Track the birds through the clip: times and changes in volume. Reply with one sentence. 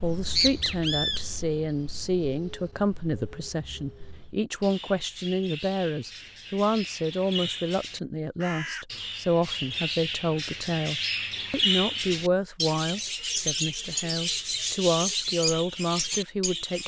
The birds can be heard from 0.0 to 16.8 s, getting quieter then louder.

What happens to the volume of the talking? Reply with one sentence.
The loudness of the talking stays about the same.